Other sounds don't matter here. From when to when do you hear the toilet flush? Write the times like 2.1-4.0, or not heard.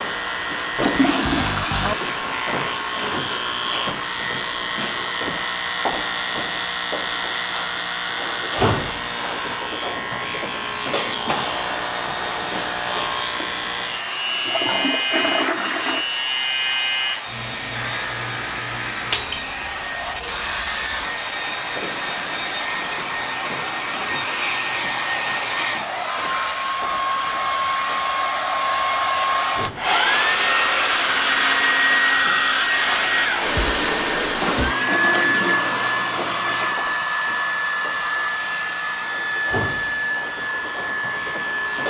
0.8-1.9, 14.4-16.1, 34.4-36.8.